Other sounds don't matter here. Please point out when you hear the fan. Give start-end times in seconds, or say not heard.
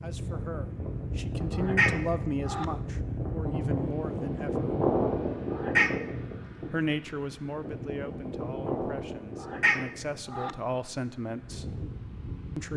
0.0-12.7.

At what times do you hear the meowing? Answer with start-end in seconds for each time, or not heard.
1.6-2.6, 5.5-6.0, 9.4-10.5.